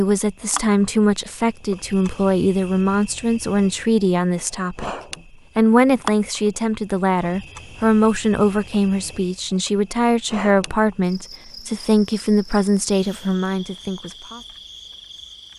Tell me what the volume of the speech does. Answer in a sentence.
The volume of the speech stays about the same.